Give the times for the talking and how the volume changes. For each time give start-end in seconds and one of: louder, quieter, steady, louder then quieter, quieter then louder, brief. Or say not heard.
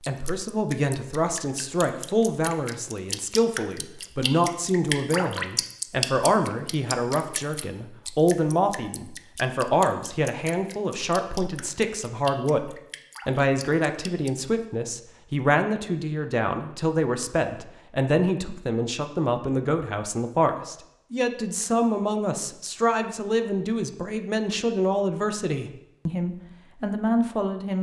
0.1-27.7 steady.